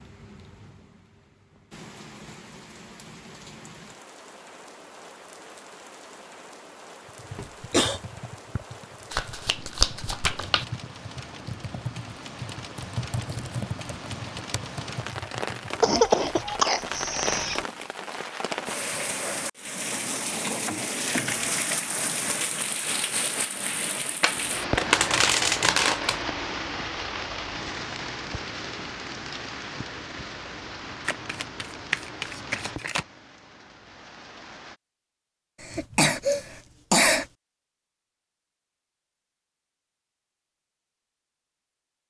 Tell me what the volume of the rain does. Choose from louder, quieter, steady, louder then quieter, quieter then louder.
louder then quieter.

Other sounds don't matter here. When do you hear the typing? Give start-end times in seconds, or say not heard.
7.0-16.6.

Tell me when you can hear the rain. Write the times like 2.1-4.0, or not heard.
0.0-34.8.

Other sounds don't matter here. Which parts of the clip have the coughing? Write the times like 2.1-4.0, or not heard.
7.3-8.0, 15.8-17.6, 35.6-37.2.